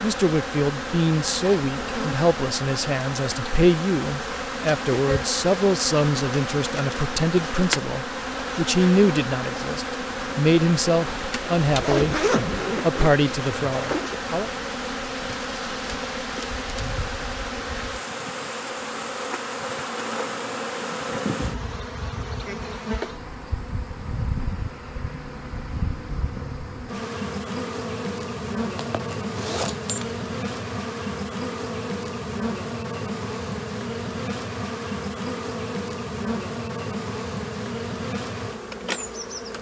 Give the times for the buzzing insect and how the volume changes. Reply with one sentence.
The buzzing insect can be heard from 0.0 to 39.5 s, at a steady volume.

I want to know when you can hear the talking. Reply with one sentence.
You can hear the talking from 0.0 to 14.5 s.